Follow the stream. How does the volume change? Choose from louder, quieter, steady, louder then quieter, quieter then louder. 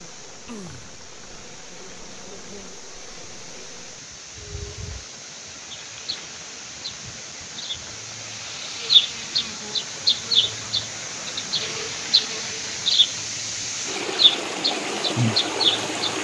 louder.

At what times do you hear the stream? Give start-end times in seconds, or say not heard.
0.0-16.1.